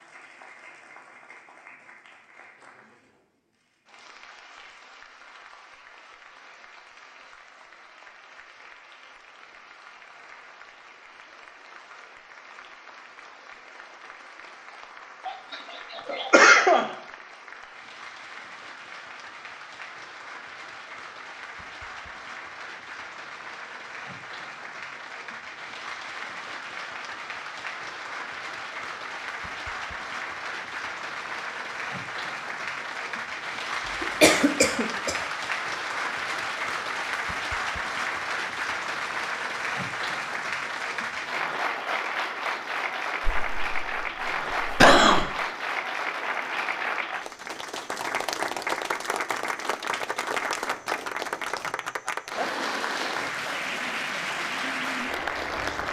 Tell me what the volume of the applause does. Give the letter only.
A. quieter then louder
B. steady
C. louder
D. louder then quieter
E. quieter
C.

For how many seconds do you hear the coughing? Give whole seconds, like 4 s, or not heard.
5 s.